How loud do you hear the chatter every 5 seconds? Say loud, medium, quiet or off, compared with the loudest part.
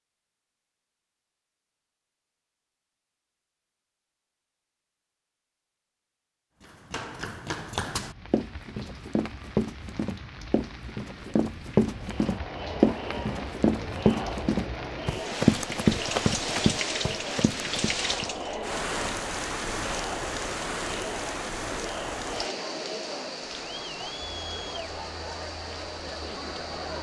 off, off, loud, loud, loud, loud.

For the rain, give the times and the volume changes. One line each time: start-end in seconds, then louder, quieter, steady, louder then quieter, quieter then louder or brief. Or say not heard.
8.0-26.9 louder then quieter.